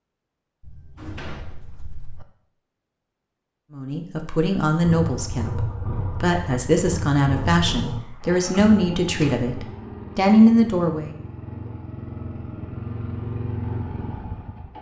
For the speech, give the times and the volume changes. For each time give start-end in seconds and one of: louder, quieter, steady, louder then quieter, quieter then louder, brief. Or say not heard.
3.8-11.2 louder.